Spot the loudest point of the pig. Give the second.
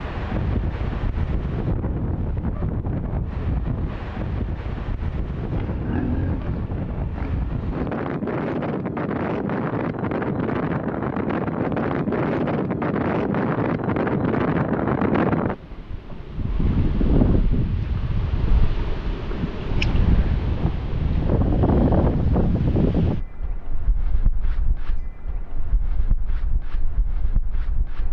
6 s.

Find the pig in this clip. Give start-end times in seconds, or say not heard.
5.5-8.0.